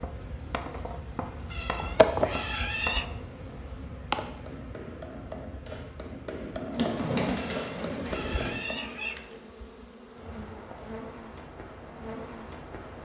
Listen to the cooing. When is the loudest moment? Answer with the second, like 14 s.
7 s.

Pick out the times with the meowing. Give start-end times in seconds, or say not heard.
1.5-3.1, 7.3-9.2.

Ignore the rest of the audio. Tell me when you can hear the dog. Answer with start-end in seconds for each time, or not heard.
not heard.